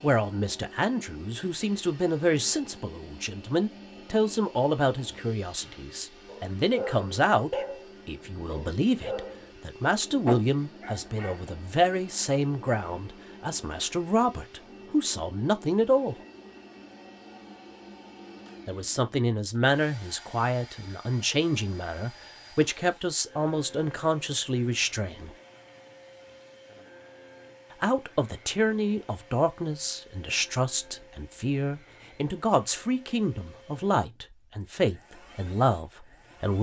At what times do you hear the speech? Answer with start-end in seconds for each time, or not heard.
0.0-16.1, 18.6-25.3, 27.8-36.5.